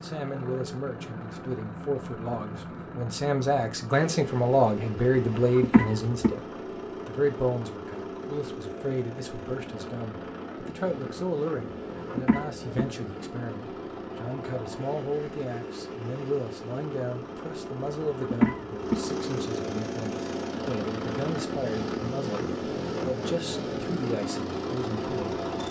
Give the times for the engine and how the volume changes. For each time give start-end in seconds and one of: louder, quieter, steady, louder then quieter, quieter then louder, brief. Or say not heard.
0.0-25.6 louder.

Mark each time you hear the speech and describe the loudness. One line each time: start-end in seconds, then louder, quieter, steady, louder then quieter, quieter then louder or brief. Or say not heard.
0.0-6.5 louder
7.0-25.4 steady.